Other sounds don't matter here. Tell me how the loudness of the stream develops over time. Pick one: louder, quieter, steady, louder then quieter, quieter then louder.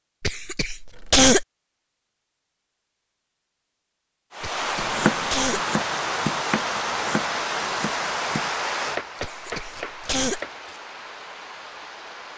quieter.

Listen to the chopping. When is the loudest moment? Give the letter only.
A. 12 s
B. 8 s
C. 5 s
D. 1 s
C.